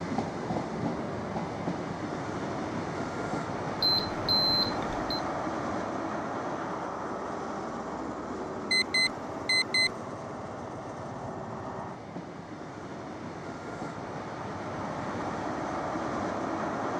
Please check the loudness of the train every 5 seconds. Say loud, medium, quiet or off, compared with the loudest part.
loud, loud, medium, loud.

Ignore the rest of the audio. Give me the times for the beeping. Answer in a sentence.
The beeping can be heard from 3.8 to 5.0 s and from 8.7 to 9.9 s.